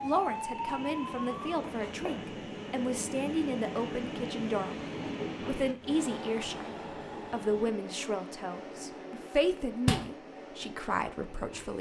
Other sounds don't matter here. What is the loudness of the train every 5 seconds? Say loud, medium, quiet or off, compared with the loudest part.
loud, loud, medium.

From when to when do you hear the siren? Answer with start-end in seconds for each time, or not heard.
0.0-1.6.